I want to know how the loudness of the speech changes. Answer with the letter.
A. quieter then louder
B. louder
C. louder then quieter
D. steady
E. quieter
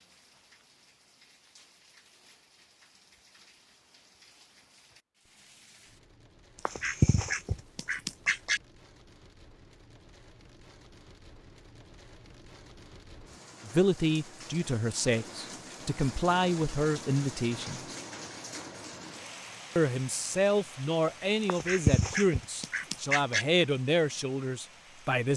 D.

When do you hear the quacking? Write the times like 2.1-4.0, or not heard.
6.7-8.6, 21.4-23.4.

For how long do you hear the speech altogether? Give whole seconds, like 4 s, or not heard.
10 s.